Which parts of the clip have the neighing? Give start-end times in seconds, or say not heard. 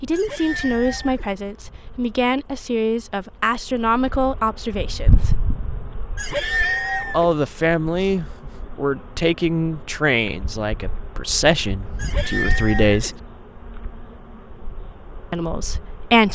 0.1-1.3, 6.2-7.3, 11.9-13.2.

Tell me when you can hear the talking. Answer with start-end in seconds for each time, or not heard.
0.0-5.3, 7.1-13.2, 15.3-16.3.